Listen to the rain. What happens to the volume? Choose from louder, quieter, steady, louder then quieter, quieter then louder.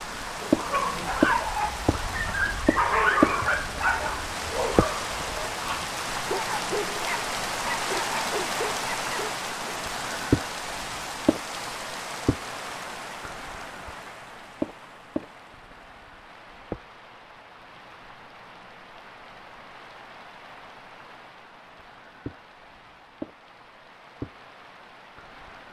quieter.